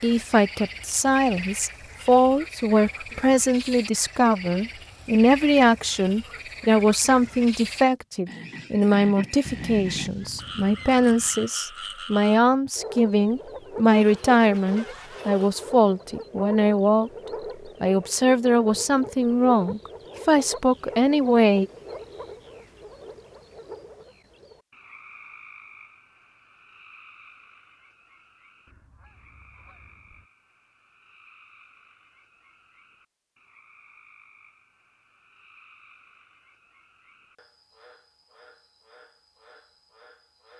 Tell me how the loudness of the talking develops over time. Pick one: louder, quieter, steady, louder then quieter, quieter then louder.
steady.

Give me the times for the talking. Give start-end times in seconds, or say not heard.
0.0-17.1, 17.8-21.6.